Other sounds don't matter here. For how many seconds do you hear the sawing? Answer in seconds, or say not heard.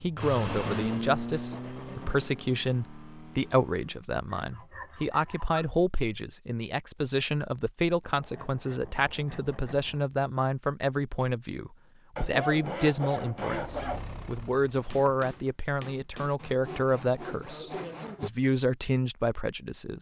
9 s.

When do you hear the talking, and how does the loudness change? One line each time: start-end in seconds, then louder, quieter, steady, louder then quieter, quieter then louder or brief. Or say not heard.
0.0-19.9 steady.